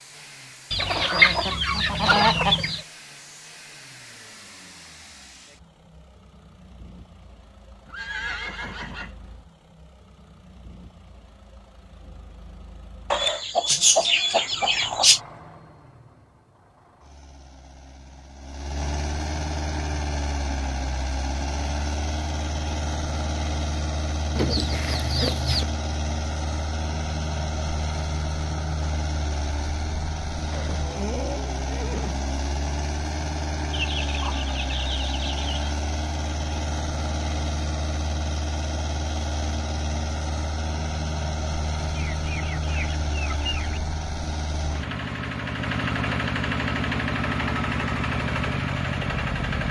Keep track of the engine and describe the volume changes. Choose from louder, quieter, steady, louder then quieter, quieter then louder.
louder.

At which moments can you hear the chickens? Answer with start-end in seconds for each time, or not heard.
0.7-2.8, 13.1-15.2, 24.3-25.6, 33.7-35.8, 41.9-43.8.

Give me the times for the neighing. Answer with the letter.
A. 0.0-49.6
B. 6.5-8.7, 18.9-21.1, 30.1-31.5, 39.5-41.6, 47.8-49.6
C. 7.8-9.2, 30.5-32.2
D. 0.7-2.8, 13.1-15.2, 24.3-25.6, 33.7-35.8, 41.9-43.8
C.